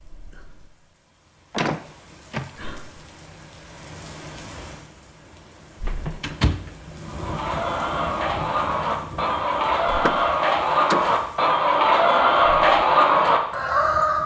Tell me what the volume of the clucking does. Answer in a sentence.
The volume of the clucking goes up.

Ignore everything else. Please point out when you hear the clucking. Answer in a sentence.
You can hear the clucking from 7.0 to 14.2 s.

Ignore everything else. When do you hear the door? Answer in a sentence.
You can hear the door from 1.5 to 2.8 s, from 5.8 to 6.8 s and from 9.8 to 11.2 s.